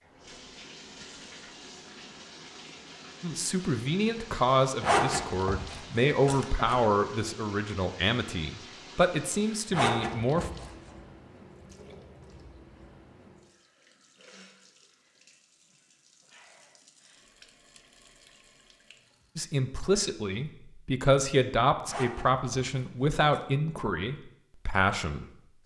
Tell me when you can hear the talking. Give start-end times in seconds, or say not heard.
3.2-10.5, 19.4-25.6.